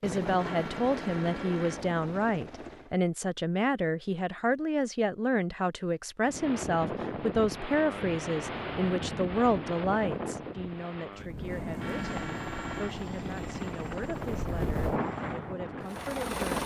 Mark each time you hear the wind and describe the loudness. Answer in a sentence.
You can hear the wind from 6.2 to 16.4 s, getting quieter then louder.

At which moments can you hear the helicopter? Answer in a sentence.
You can hear the helicopter from 0.0 to 3.0 s and from 11.2 to 16.6 s.